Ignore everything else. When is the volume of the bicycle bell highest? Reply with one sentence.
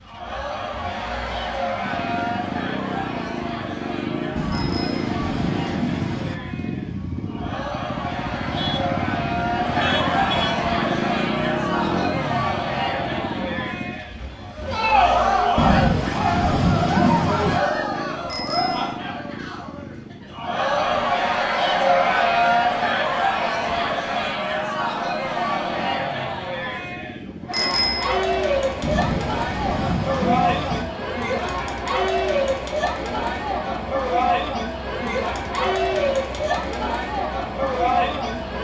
The loudest moment of the bicycle bell is at 28 seconds.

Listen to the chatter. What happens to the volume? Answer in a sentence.
The volume of the chatter goes up.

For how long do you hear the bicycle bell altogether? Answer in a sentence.
You can hear the bicycle bell for 2 seconds altogether.